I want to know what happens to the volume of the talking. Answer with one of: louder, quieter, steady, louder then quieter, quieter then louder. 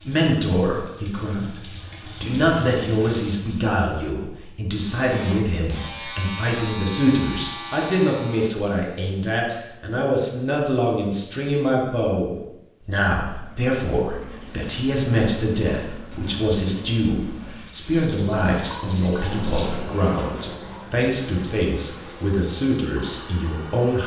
steady.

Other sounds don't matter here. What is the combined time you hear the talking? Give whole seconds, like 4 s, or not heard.
24 s.